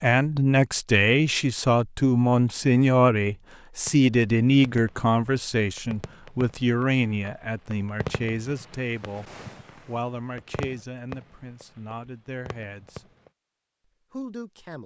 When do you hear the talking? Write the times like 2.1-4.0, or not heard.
0.0-13.1, 14.1-14.8.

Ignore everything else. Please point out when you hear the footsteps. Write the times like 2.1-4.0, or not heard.
not heard.